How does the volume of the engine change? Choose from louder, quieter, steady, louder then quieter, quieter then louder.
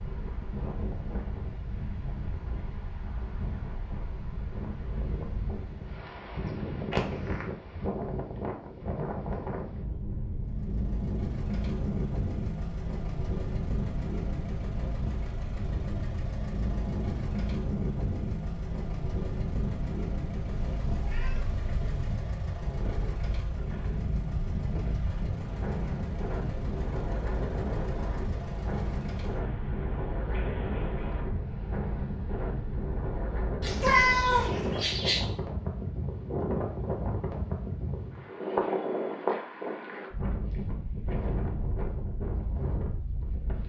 steady.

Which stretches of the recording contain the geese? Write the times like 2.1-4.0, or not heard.
not heard.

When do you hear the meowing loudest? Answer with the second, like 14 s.
34 s.